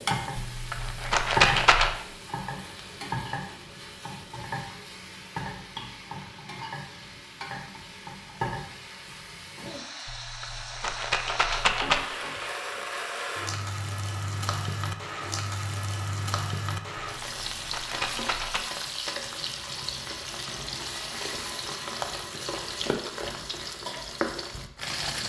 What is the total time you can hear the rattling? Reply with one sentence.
You can hear the rattling for 5 seconds altogether.